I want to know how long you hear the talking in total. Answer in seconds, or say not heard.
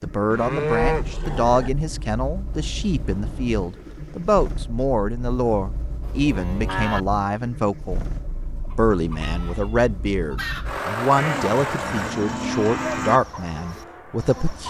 14 s.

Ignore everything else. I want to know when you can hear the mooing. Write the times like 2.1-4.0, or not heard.
0.3-1.7, 6.0-7.0, 11.2-13.2.